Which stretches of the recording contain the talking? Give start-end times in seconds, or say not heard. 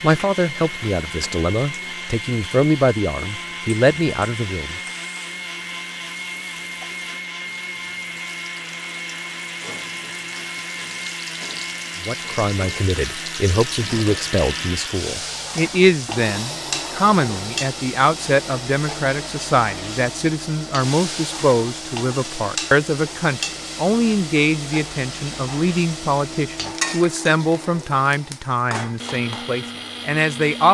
0.0-4.8, 12.0-30.6.